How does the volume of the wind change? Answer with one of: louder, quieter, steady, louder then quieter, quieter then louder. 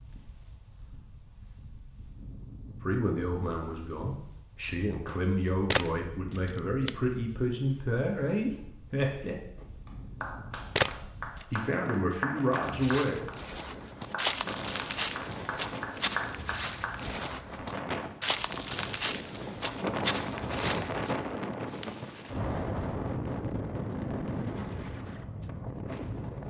louder.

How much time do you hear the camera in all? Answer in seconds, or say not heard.
3 s.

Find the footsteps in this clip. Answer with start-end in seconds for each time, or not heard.
12.6-21.1.